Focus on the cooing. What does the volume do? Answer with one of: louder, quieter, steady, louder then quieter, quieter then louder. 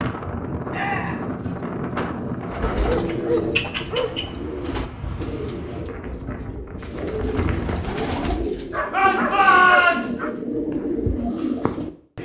quieter then louder.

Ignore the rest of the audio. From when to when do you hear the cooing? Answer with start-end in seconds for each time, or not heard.
2.4-12.2.